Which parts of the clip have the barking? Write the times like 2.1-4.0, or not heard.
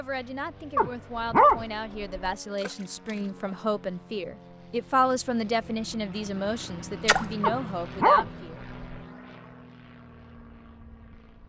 0.8-2.3, 7.4-8.9.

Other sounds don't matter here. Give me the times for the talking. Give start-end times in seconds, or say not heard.
0.0-8.6.